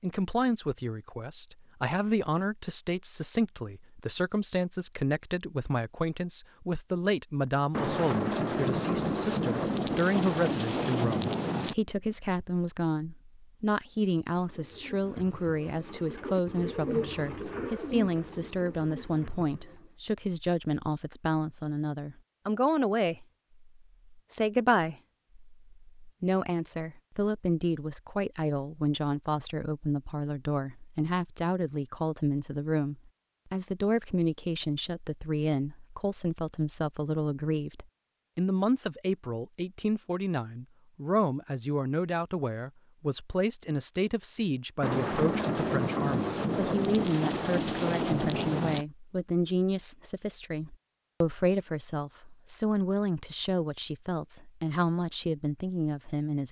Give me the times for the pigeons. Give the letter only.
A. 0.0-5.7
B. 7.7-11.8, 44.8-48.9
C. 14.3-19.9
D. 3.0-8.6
C.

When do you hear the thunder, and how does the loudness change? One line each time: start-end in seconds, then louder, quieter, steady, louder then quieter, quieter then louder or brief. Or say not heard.
7.7-11.8 steady
44.8-48.9 steady.